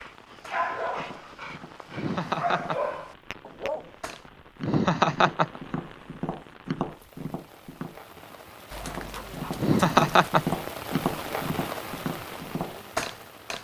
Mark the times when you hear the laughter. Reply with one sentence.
You can hear the laughter from 1.9 to 2.9 s, from 4.6 to 5.6 s and from 9.6 to 10.6 s.